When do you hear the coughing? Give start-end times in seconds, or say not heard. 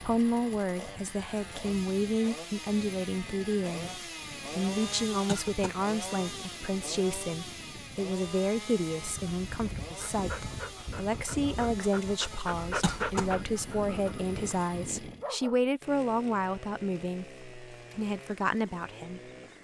5.2-5.8, 12.8-13.3.